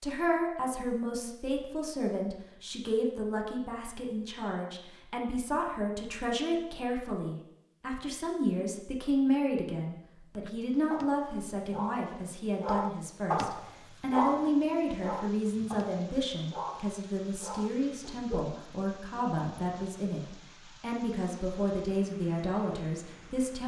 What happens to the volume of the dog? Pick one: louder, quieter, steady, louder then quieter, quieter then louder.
louder then quieter.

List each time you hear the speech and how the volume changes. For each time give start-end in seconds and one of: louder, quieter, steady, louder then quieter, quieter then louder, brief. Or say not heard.
0.0-23.6 steady.